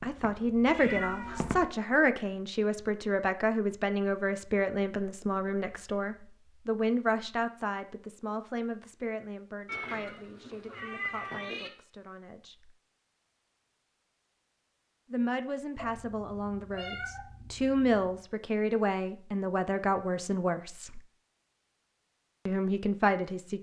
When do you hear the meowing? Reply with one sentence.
The meowing can be heard from 0.7 to 1.8 s, from 9.7 to 11.7 s and from 15.8 to 18.2 s.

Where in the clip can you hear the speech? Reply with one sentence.
The speech can be heard from 0.0 to 12.8 s, from 15.1 to 21.0 s and from 22.4 to 23.5 s.